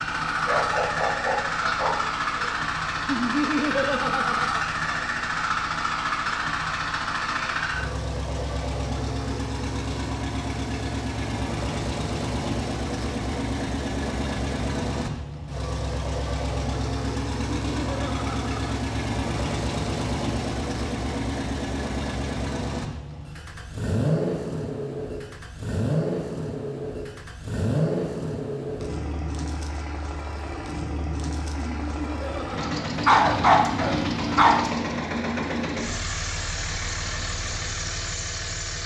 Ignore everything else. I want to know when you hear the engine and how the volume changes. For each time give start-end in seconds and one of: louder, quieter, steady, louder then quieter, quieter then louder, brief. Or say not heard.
0.0-38.8 steady.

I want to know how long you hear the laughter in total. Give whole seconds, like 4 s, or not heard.
4 s.